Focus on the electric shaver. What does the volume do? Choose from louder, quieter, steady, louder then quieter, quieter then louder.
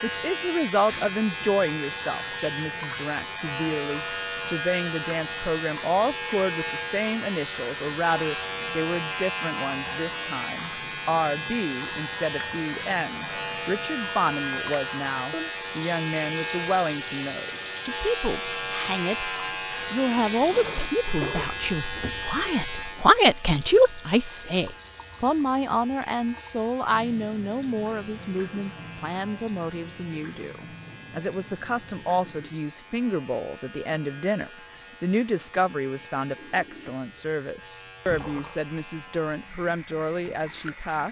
quieter.